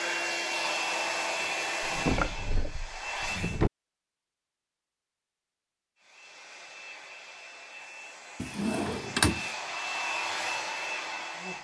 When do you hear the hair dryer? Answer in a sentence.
You can hear the hair dryer from 0.0 to 3.6 s and from 6.0 to 11.5 s.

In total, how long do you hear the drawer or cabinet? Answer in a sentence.
The drawer or cabinet can be heard for 3 seconds in total.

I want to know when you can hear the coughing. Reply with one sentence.
You can't hear the coughing here.